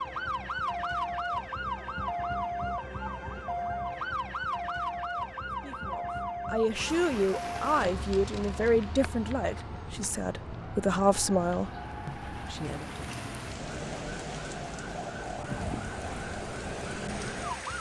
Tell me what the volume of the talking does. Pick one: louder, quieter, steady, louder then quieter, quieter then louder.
steady.